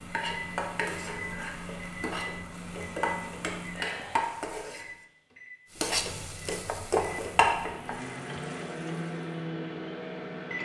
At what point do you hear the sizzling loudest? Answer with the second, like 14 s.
7 s.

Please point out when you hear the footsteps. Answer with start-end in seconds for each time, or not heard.
not heard.